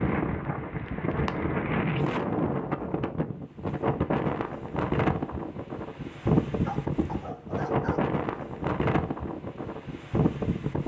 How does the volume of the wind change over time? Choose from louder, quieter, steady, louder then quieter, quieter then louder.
steady.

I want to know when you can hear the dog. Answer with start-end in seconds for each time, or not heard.
6.7-8.2.